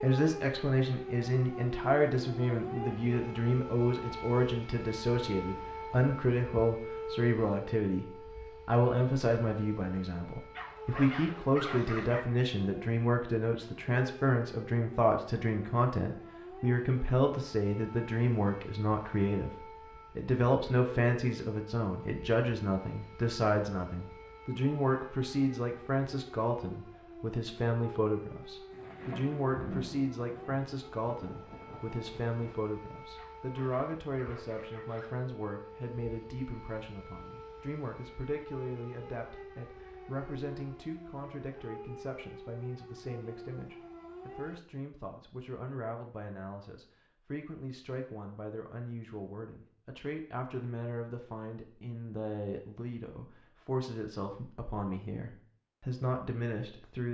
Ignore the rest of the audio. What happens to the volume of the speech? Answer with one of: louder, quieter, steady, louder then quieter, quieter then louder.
quieter.